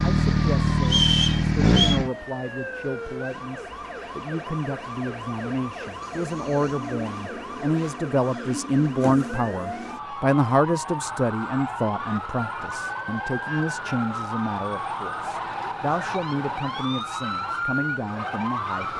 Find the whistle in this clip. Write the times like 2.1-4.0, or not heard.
0.8-2.0.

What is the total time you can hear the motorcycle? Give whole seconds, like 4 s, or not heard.
2 s.